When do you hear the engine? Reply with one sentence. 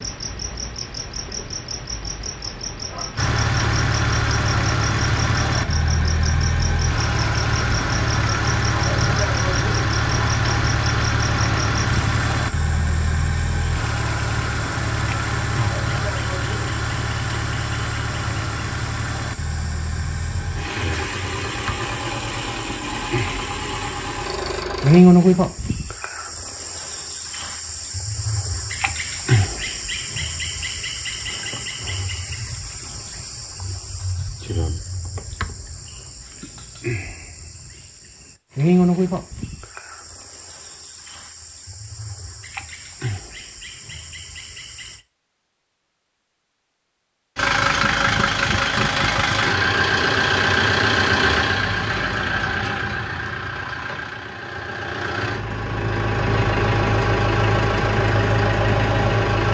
The engine can be heard from 3.1 to 25.0 s and from 47.4 to 59.4 s.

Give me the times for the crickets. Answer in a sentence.
The crickets can be heard from 0.0 to 45.0 s.